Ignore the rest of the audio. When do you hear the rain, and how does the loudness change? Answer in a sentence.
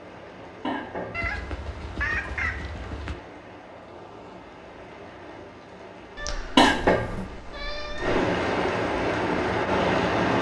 You can hear the rain from 0.0 to 10.3 s, getting louder.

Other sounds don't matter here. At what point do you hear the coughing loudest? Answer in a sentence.
The volume of the coughing peaks at 7 seconds.